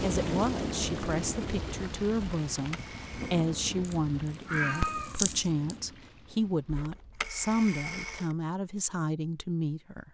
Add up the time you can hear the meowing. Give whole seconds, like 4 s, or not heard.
2 s.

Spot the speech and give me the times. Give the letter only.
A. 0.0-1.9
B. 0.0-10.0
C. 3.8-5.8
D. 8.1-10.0
B.